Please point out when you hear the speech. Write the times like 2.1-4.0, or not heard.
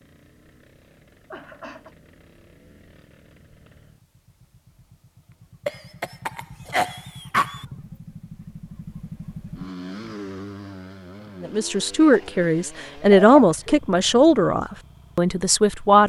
11.4-16.0.